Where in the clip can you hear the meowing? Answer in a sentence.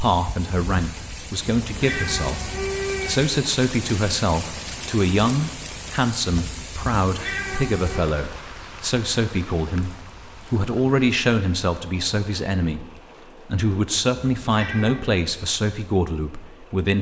The meowing can be heard from 1.6 to 3.3 s, from 7.0 to 8.1 s and from 14.4 to 15.2 s.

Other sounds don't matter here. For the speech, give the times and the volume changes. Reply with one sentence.
The speech can be heard from 0.0 to 16.9 s, at a steady volume.